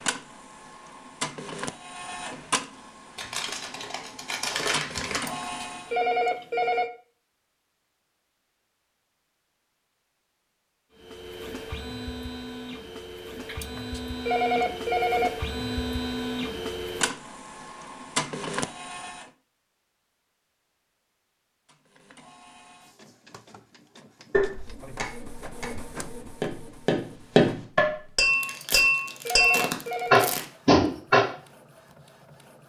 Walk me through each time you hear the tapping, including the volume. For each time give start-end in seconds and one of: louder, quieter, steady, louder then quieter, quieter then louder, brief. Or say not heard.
24.3-31.2 louder.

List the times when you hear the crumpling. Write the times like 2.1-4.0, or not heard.
3.1-5.4, 28.3-30.4.